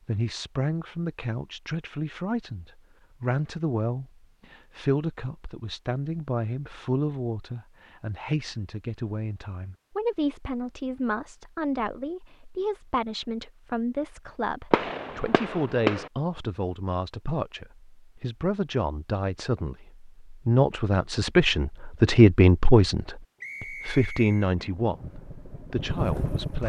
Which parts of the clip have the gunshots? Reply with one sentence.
You can hear the gunshots from 14.7 to 16.1 s.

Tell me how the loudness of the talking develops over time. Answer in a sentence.
The loudness of the talking goes up.